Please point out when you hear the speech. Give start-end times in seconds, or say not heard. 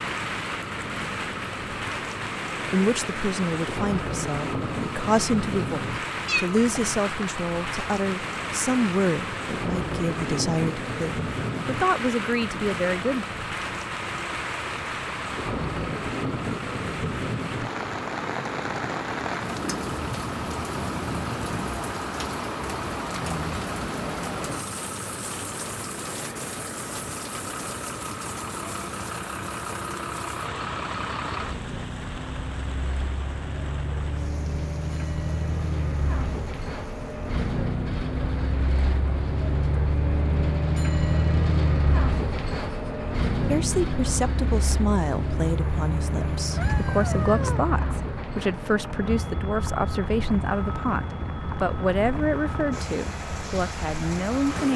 2.7-13.2, 43.5-54.7.